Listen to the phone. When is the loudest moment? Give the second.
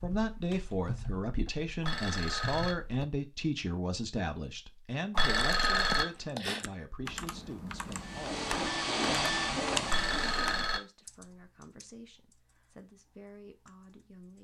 6 s.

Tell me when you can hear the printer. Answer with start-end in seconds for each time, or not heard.
7.8-10.7.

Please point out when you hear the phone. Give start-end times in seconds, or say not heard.
1.8-2.8, 5.2-6.0, 9.8-10.8.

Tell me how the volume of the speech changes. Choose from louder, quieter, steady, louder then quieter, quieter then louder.
quieter.